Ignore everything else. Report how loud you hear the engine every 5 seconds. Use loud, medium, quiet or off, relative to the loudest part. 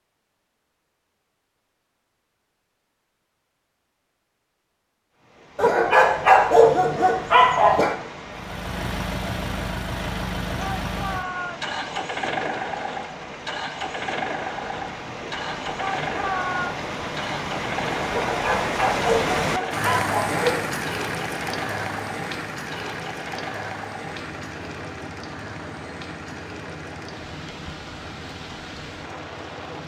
off, loud, loud, loud, medium, medium.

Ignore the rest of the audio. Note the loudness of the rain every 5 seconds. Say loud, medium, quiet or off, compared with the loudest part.
off, medium, medium, loud, loud, medium.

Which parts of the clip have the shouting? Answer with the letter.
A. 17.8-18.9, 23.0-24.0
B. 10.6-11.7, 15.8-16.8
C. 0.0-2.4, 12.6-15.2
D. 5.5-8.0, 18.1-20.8
B.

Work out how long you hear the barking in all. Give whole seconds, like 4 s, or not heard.
5 s.